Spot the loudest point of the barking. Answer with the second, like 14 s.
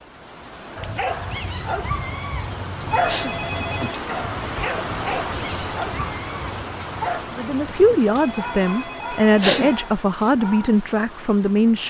3 s.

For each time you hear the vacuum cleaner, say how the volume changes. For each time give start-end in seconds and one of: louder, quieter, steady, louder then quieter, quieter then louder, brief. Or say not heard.
not heard.